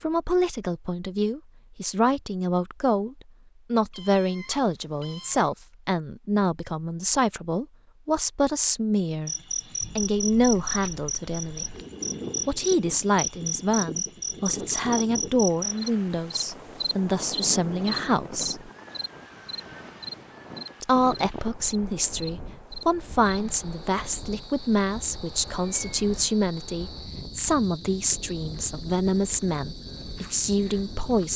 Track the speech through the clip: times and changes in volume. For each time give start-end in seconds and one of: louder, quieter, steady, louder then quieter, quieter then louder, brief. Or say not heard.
0.0-9.3 steady
9.9-11.7 brief
12.4-18.7 steady
20.8-31.3 steady.